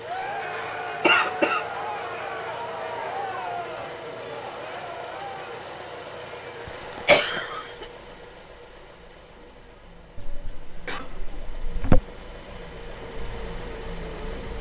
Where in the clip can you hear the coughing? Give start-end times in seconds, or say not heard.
1.0-1.6, 6.7-7.8, 10.2-12.0.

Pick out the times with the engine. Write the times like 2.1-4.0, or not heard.
0.0-14.5.